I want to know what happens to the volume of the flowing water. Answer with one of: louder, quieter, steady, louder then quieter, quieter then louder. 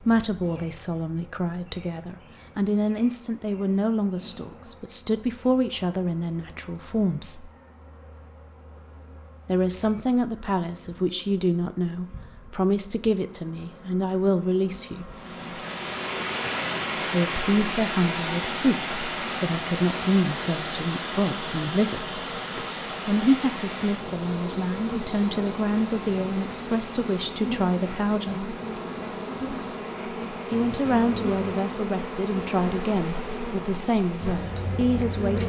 quieter.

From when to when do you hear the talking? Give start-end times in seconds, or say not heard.
0.0-7.5, 9.4-15.2, 17.1-22.4, 23.1-28.5, 30.5-35.4.